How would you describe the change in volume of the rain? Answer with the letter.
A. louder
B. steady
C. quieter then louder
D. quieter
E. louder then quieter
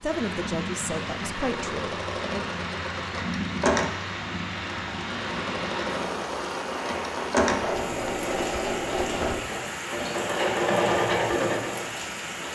B.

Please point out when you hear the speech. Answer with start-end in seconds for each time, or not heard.
0.0-2.5.